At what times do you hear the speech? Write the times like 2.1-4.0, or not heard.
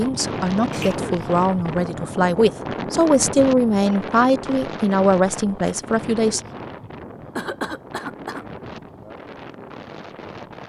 0.0-6.4.